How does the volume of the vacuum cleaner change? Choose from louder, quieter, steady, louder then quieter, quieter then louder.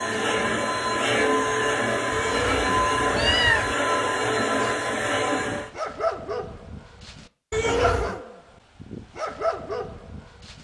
steady.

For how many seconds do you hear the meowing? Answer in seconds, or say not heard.
2 s.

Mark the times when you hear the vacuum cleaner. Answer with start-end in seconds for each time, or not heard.
0.0-5.7.